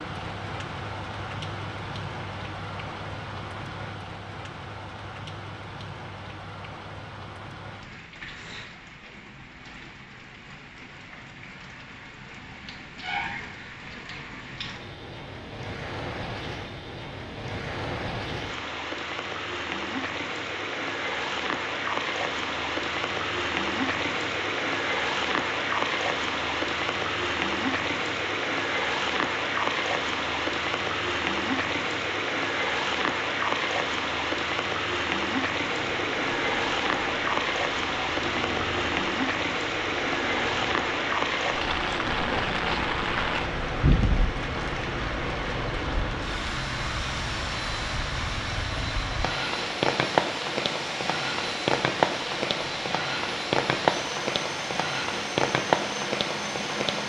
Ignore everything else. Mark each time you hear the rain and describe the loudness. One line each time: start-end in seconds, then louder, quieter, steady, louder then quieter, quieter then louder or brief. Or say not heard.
0.0-57.0 louder.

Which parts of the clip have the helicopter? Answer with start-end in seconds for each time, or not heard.
35.6-57.0.